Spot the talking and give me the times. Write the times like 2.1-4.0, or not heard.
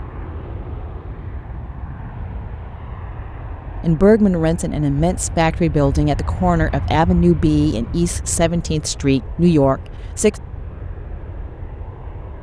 3.8-10.3.